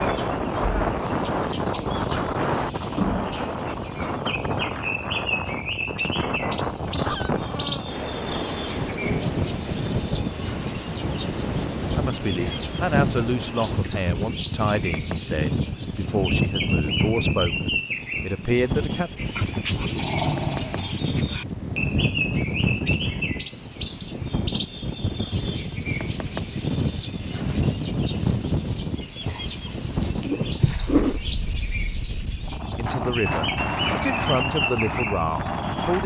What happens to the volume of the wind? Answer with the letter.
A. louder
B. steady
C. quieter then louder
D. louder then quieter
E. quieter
B.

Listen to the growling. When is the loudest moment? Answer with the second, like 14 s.
31 s.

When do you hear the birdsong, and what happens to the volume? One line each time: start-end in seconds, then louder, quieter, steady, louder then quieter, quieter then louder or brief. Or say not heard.
0.0-36.0 steady.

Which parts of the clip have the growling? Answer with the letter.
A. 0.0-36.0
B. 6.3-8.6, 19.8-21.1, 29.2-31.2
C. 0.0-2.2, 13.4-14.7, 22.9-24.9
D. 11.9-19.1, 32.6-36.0
B.